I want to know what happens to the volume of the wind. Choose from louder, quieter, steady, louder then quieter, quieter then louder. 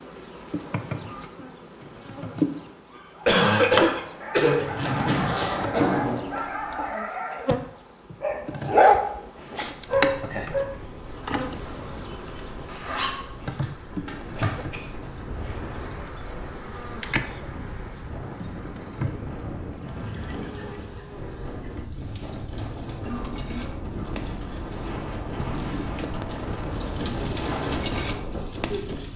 louder.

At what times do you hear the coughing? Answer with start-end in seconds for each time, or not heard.
3.2-4.7, 14.1-15.7, 23.1-24.2.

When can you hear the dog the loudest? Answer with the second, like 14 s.
9 s.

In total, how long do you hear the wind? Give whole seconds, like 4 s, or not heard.
20 s.